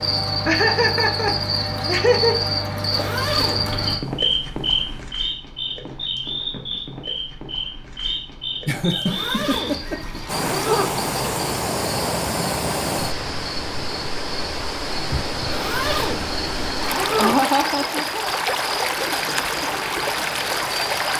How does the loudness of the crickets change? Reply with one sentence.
The loudness of the crickets goes down.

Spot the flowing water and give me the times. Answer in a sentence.
The flowing water can be heard from 10.2 to 21.1 s.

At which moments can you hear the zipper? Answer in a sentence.
The zipper can be heard from 2.9 to 3.8 s, from 9.1 to 10.9 s and from 15.5 to 17.4 s.